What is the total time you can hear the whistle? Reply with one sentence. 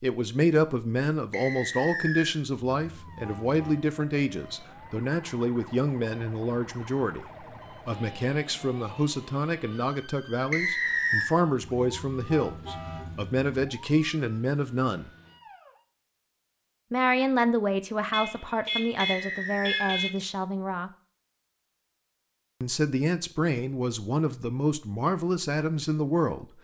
You can hear the whistle for 3 seconds altogether.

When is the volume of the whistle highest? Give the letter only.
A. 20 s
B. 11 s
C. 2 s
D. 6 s
B.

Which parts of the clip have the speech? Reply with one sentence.
You can hear the speech from 0.0 to 15.1 s, from 16.9 to 20.9 s and from 22.6 to 26.4 s.